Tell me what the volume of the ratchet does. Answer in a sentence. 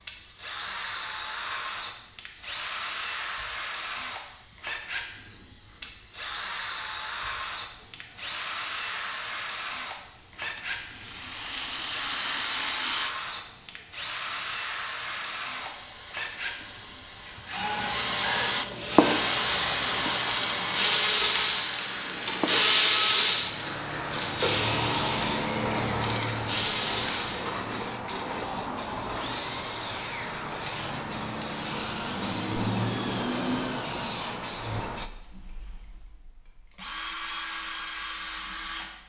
The volume of the ratchet goes up, then down.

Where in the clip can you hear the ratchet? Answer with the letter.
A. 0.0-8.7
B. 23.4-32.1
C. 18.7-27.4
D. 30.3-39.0
C.